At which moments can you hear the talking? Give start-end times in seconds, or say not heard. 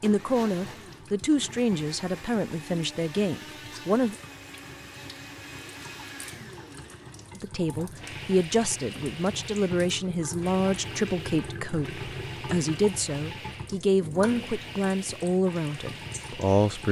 0.0-4.2, 7.3-16.8.